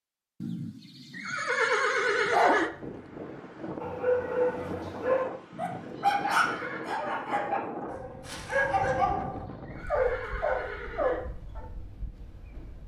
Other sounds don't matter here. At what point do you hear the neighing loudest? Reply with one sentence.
The loudest moment of the neighing is at 2 seconds.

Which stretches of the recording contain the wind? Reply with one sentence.
You can hear the wind from 2.7 to 12.8 s.